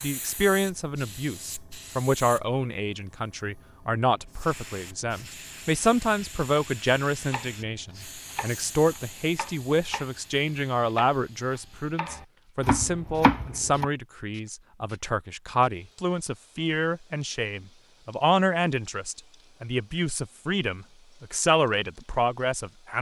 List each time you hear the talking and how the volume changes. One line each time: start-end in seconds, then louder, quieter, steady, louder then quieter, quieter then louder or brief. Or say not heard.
0.0-22.9 steady.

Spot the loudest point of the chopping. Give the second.
13 s.